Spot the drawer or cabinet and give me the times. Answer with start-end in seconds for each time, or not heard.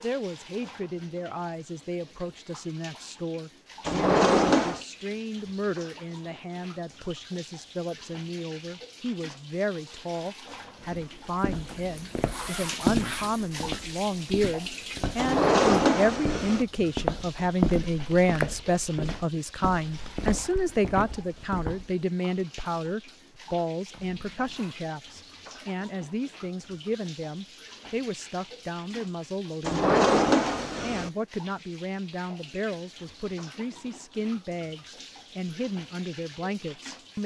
3.9-4.8, 15.2-16.6, 29.6-31.1.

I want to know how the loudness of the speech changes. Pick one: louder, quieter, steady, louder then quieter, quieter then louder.
louder then quieter.